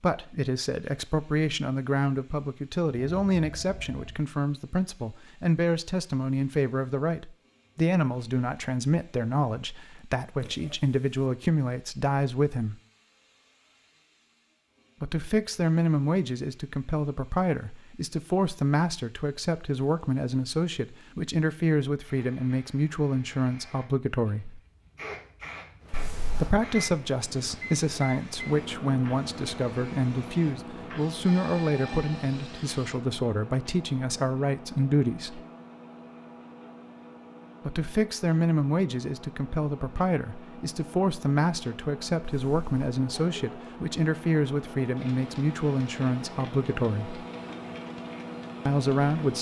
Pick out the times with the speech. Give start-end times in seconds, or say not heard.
0.0-12.8, 15.0-24.6, 26.3-35.4, 37.6-47.2, 48.6-49.3.